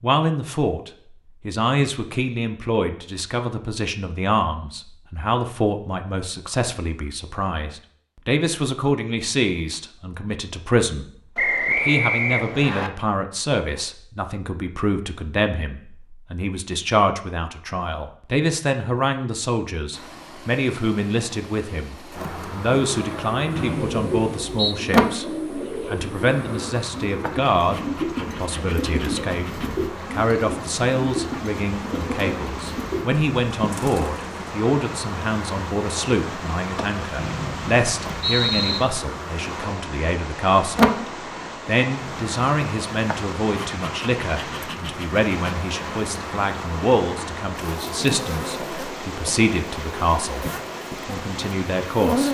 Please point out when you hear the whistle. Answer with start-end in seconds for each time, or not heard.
11.3-12.9, 23.6-24.8, 37.1-38.8.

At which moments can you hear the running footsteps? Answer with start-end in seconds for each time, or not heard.
not heard.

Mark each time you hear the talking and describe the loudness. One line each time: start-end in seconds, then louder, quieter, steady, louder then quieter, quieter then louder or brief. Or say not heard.
0.0-40.9 steady
41.6-52.2 steady.